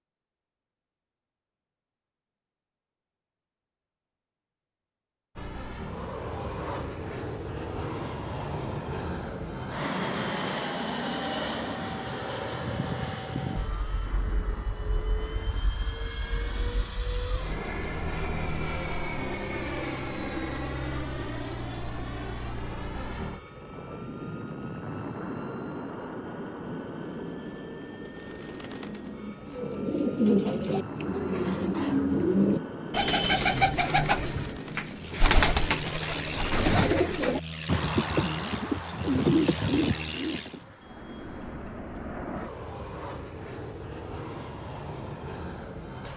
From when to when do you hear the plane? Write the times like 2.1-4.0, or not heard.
5.3-46.1.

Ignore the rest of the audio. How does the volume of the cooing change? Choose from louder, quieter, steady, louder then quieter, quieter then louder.
steady.